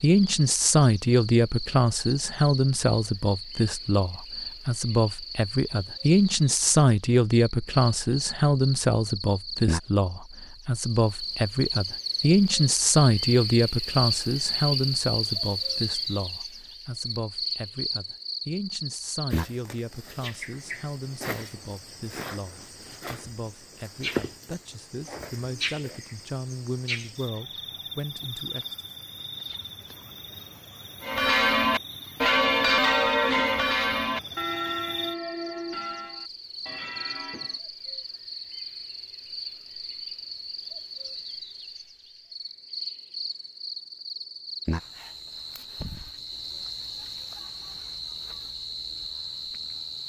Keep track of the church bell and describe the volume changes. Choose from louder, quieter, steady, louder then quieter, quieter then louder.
quieter.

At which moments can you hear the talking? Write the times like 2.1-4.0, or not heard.
0.0-28.9.